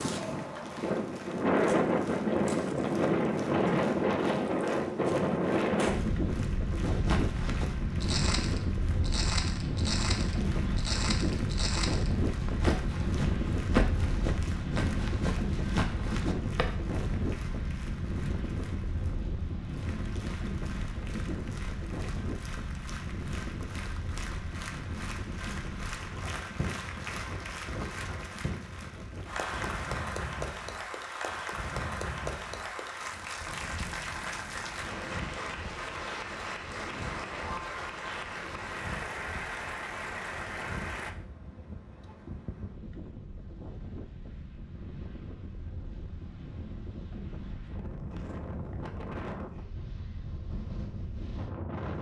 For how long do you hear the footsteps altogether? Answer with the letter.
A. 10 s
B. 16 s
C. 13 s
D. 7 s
A.